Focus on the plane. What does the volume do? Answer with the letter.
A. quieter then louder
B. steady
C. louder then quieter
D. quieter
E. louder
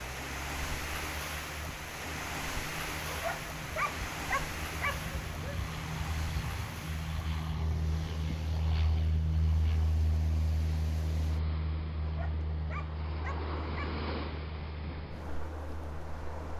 C.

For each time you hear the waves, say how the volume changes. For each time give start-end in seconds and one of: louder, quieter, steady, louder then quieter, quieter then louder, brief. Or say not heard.
0.0-16.5 quieter then louder.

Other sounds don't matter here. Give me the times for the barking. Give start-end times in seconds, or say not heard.
3.0-5.6, 12.0-14.1.